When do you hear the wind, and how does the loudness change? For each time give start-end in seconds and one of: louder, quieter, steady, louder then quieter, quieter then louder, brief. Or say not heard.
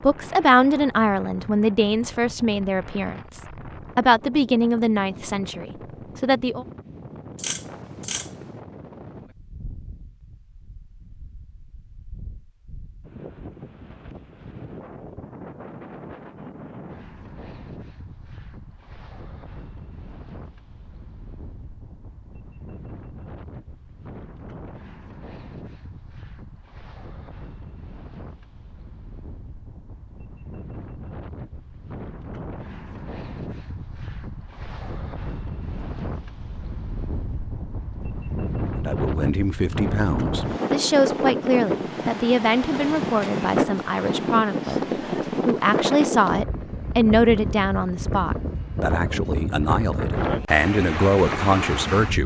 0.0-52.2 louder.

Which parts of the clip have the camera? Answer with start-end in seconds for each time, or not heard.
7.3-8.4.